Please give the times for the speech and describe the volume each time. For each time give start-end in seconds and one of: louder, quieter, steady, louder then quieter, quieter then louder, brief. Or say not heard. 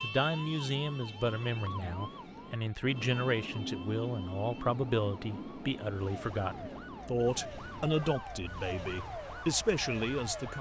0.0-10.5 steady.